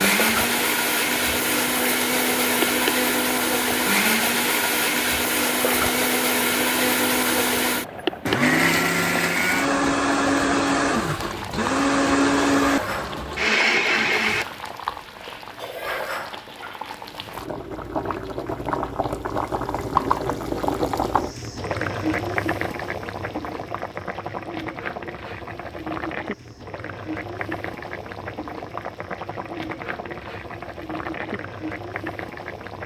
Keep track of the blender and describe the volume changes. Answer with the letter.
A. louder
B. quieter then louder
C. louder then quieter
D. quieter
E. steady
E.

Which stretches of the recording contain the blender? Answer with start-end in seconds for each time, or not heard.
0.0-14.4.